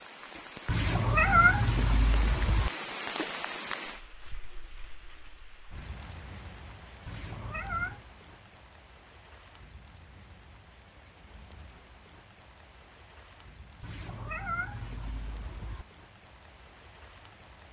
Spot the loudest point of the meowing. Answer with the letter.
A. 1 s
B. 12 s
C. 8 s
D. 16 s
A.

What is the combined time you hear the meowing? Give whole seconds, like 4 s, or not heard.
5 s.